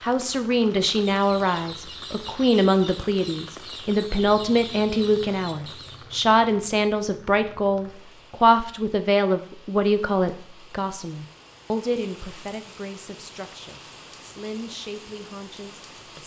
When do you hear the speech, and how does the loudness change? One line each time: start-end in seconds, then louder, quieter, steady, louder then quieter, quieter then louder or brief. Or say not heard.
0.0-16.2 quieter.